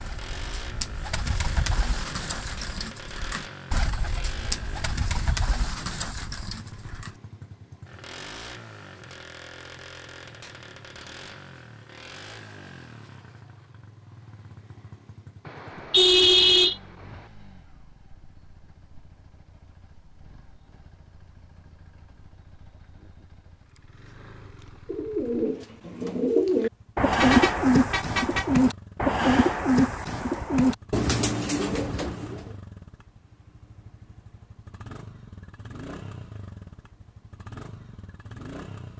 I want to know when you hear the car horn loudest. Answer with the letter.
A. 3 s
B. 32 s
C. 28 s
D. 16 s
D.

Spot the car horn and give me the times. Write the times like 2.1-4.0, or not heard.
15.4-17.2, 27.1-28.6.